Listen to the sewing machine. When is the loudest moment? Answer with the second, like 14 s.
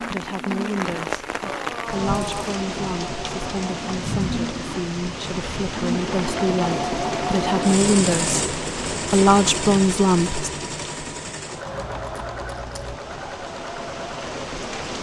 8 s.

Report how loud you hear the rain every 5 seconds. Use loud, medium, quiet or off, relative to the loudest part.
loud, loud, medium.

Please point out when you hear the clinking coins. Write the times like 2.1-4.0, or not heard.
1.4-2.6, 11.7-13.0.